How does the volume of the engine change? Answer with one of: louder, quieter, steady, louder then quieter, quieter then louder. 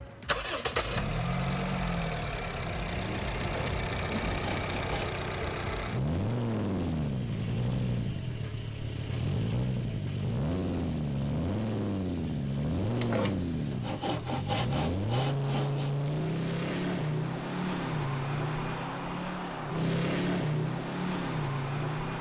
steady.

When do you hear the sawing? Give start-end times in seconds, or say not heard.
3.4-5.2, 12.9-15.9.